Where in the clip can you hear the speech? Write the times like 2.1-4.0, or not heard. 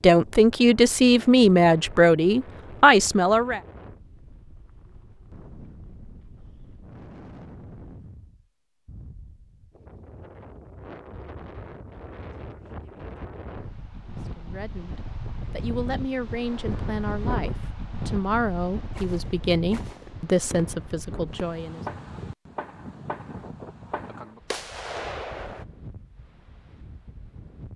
0.0-3.6, 14.1-21.8.